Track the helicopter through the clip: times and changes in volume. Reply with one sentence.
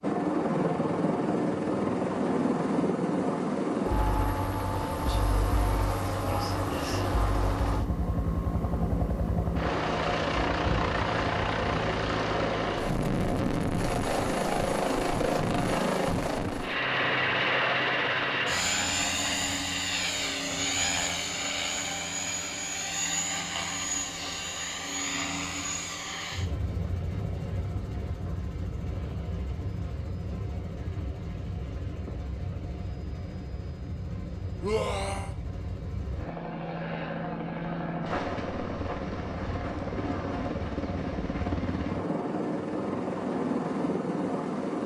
You can hear the helicopter from 0.0 to 44.8 s, getting quieter then louder.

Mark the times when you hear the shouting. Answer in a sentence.
The shouting can be heard from 34.6 to 35.3 s.